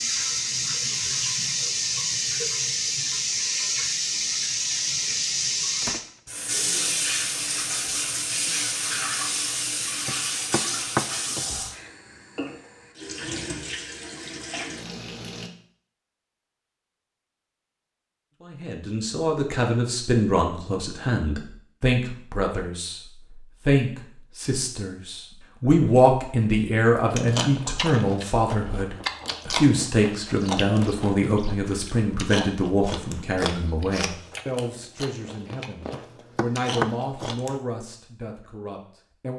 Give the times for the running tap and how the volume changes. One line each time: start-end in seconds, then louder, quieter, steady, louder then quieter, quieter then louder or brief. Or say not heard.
0.0-15.5 quieter.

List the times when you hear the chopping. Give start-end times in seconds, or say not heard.
10.1-11.5, 35.9-37.4.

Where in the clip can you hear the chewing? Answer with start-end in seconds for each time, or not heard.
27.1-37.6.